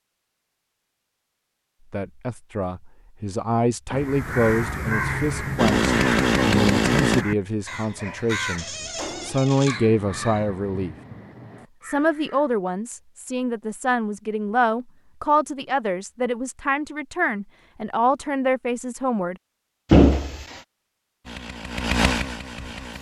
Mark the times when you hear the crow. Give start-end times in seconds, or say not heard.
4.0-12.4.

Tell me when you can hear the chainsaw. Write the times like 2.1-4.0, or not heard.
5.5-7.2, 21.2-22.9.